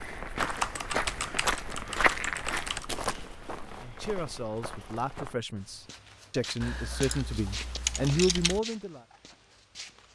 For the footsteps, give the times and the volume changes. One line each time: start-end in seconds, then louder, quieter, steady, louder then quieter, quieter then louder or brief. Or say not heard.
0.0-10.1 quieter.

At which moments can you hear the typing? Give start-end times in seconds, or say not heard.
0.5-2.9, 6.6-8.6.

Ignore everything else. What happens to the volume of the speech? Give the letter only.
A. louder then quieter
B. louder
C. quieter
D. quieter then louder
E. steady
B.